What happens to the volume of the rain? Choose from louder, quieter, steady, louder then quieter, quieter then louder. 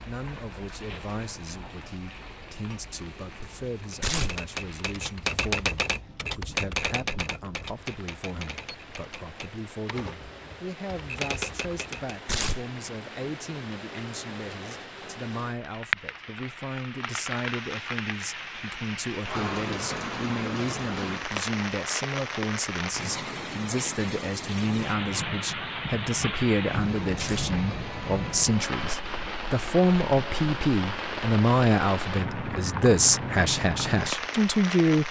louder.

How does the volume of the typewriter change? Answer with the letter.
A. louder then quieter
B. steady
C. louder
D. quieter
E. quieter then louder
E.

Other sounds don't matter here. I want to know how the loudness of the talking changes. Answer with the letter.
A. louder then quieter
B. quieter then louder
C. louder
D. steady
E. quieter
C.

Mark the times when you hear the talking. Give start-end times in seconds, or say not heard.
0.1-35.0.